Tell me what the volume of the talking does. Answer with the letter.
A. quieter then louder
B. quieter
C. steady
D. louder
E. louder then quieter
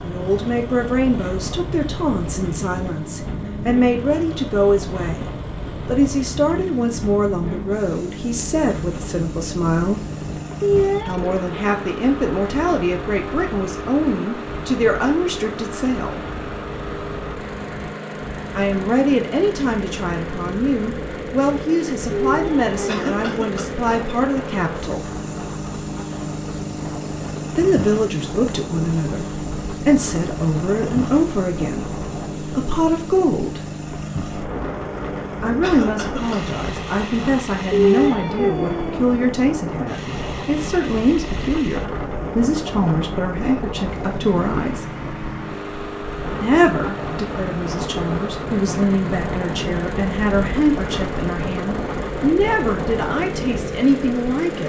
C.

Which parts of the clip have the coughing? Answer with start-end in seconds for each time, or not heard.
22.9-23.7, 35.6-36.5.